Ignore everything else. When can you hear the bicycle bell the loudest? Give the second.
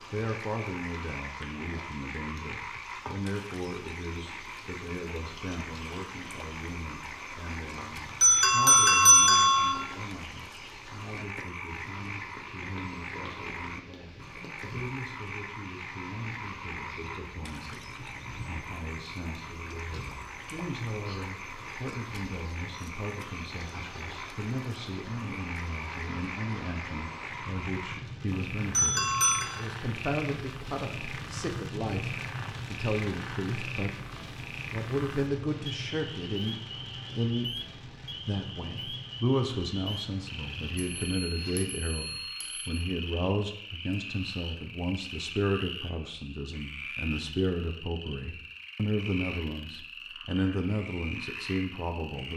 9 s.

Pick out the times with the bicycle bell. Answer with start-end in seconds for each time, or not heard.
7.8-9.8, 28.3-29.5, 40.8-42.8.